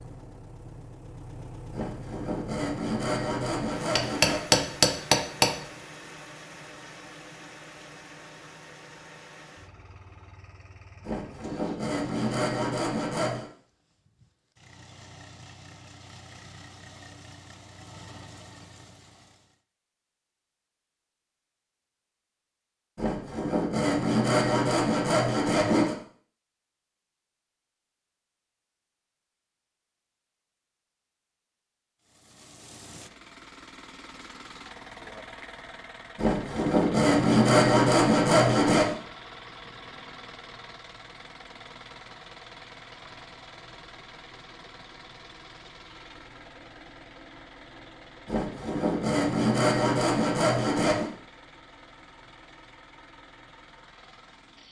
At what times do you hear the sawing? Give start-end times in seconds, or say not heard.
1.7-4.5, 11.0-13.4, 22.9-25.9, 36.1-39.0, 48.2-51.1.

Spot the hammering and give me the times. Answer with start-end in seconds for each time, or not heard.
4.0-5.6.